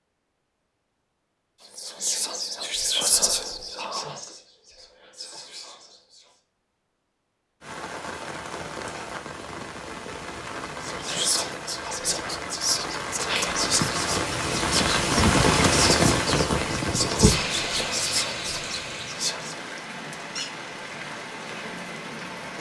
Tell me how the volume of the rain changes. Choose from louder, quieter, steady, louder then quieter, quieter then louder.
louder then quieter.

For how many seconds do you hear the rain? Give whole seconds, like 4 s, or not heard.
15 s.